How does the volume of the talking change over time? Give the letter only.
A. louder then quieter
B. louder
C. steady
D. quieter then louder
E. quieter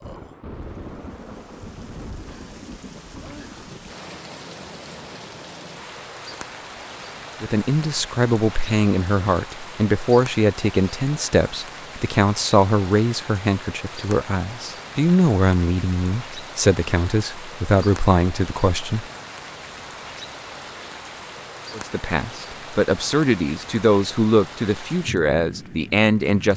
C.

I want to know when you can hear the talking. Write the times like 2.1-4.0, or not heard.
7.4-19.1, 21.8-26.5.